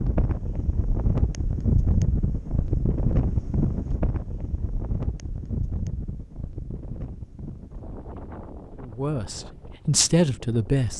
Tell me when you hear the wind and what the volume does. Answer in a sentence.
The wind can be heard from 0.0 to 10.9 s, getting quieter.